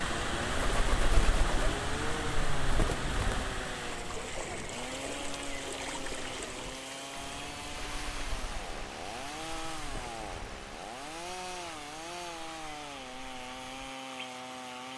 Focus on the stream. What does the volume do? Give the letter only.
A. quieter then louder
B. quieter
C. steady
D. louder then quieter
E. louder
B.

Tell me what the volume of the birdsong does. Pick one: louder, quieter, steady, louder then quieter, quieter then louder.
quieter.